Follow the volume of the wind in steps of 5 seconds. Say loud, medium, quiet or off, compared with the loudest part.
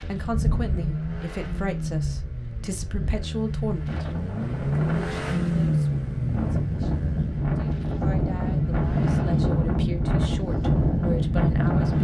medium, loud, loud.